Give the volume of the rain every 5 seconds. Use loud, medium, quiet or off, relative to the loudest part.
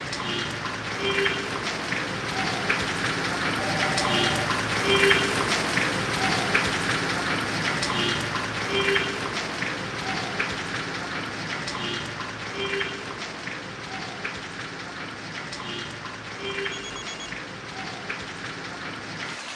loud, loud, medium, medium.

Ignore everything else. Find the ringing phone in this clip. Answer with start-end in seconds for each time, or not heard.
3.5-4.5, 16.7-17.4.